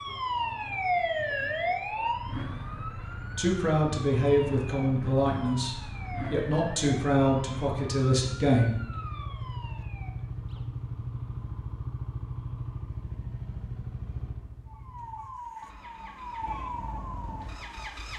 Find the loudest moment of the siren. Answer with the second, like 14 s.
1 s.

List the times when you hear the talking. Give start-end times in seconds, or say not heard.
3.4-8.8.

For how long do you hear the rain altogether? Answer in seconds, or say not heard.
not heard.